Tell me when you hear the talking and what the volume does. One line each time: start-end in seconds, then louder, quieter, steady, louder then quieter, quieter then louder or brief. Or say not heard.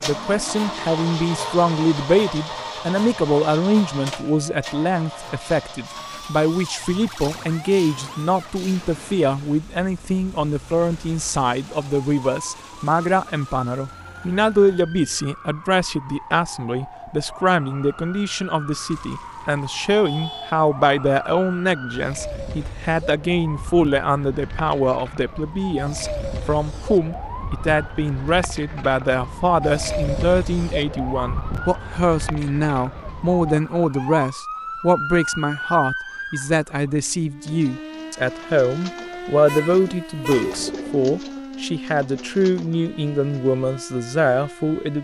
0.0-44.9 steady.